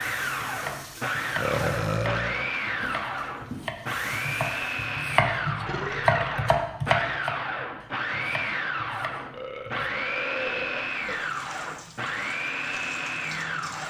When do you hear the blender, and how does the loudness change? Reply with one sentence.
The blender can be heard from 0.0 to 13.8 s, at a steady volume.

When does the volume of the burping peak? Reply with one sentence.
The volume of the burping peaks at 2 seconds.